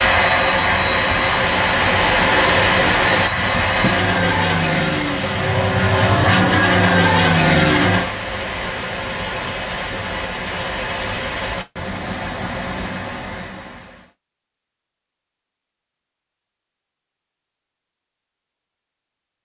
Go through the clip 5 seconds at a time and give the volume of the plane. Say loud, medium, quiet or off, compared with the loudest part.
loud, loud, off, off.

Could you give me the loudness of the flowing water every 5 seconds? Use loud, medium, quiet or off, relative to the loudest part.
loud, medium, medium, off.